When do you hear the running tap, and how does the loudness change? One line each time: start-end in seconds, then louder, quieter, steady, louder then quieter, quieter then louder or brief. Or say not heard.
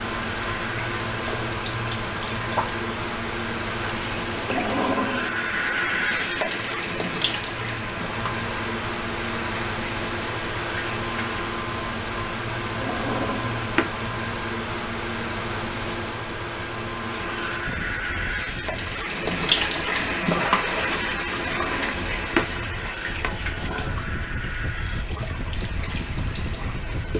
0.0-11.5 louder then quieter
17.1-27.1 louder then quieter.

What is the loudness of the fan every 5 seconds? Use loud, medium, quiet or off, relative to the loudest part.
loud, loud, loud, loud, medium, medium.